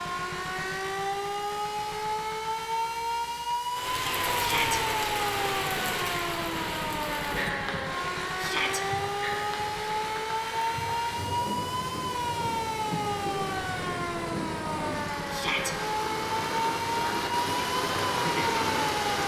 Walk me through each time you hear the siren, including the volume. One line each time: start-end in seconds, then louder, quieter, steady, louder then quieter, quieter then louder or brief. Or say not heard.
0.0-19.2 steady.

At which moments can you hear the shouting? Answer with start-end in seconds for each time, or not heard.
4.3-4.8, 8.3-8.8, 15.3-15.8.